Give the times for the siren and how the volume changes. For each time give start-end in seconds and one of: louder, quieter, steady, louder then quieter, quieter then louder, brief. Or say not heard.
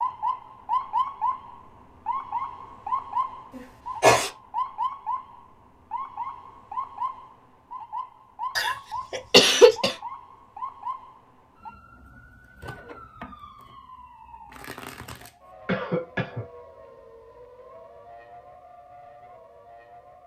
0.0-20.2 quieter.